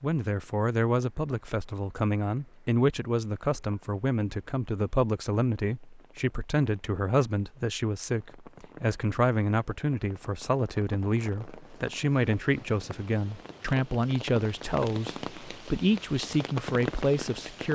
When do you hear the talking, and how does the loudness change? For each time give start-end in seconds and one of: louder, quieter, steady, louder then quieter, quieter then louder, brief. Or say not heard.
0.0-17.6 steady.